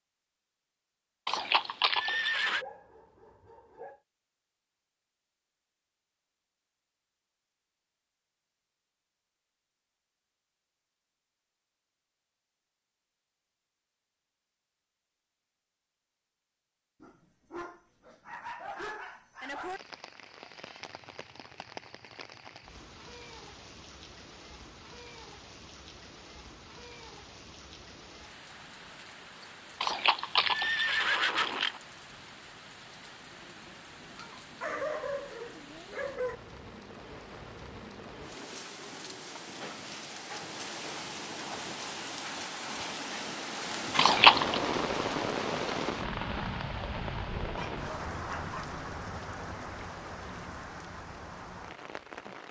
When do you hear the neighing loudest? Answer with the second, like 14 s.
44 s.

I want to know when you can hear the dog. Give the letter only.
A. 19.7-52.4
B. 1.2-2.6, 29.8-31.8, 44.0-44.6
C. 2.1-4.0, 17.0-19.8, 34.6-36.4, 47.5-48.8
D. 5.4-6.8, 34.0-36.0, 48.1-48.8
C.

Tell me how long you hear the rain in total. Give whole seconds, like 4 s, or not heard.
33 s.